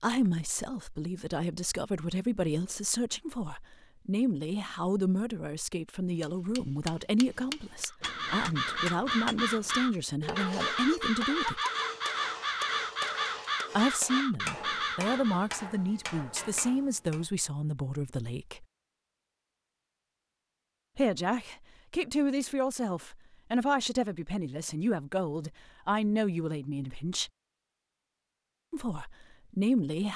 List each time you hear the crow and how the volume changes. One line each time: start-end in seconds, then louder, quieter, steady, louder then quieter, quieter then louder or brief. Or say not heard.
7.9-15.5 steady.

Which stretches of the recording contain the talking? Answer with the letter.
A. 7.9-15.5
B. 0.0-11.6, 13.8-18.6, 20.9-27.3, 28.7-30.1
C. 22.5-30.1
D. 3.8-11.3
B.